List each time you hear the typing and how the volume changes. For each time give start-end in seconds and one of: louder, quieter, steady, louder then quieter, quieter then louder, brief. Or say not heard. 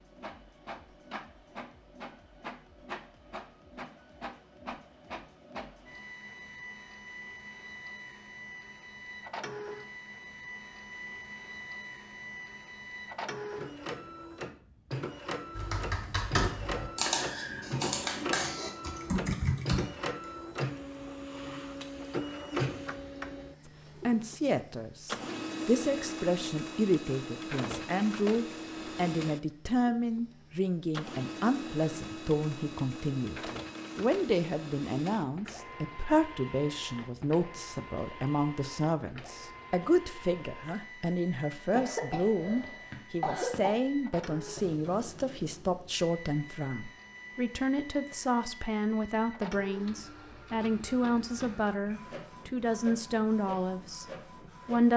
15.6-20.4 steady.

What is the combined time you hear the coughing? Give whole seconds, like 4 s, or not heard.
2 s.